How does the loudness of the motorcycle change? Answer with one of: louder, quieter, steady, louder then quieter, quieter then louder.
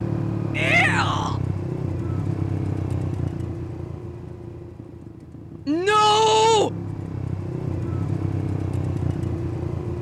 quieter then louder.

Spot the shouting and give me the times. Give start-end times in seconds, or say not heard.
0.6-1.4, 5.7-6.7.